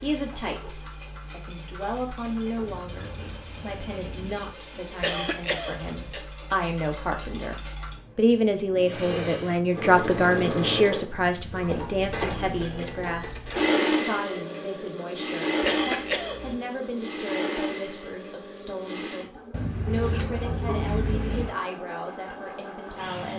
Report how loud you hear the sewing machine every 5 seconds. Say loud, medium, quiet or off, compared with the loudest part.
quiet, medium, loud, loud, medium.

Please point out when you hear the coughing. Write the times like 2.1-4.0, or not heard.
5.0-6.2, 15.6-16.6.